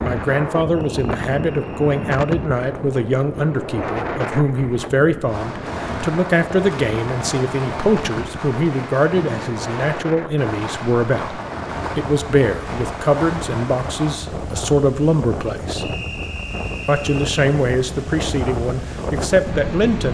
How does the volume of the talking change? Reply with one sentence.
The loudness of the talking stays about the same.